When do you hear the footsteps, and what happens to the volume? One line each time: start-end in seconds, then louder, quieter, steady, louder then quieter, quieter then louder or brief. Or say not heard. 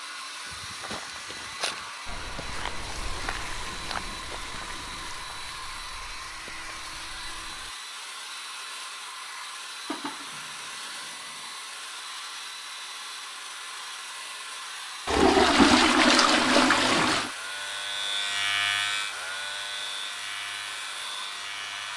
0.5-7.7 quieter.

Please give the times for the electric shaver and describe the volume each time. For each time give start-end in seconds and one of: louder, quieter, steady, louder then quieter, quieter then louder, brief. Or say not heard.
16.4-21.9 louder then quieter.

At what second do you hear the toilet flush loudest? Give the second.
16 s.